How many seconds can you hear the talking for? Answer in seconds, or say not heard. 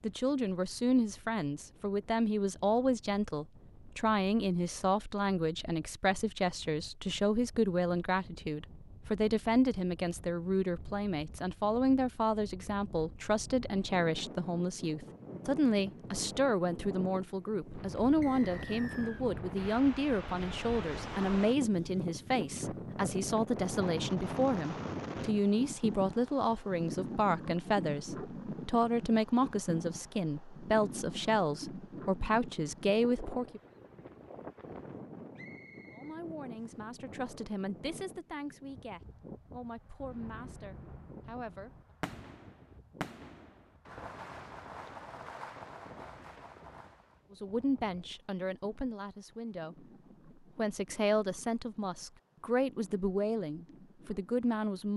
47 s.